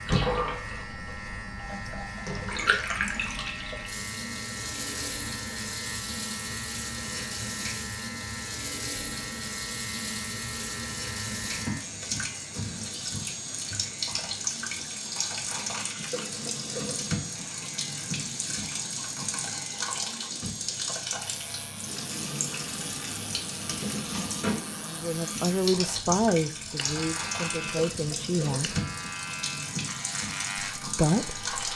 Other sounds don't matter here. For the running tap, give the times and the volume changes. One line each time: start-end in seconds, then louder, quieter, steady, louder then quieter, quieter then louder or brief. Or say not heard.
0.0-31.7 steady.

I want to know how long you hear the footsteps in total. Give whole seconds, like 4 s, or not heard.
not heard.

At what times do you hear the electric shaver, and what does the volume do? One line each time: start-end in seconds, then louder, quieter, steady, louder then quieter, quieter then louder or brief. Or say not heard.
0.0-31.7 steady.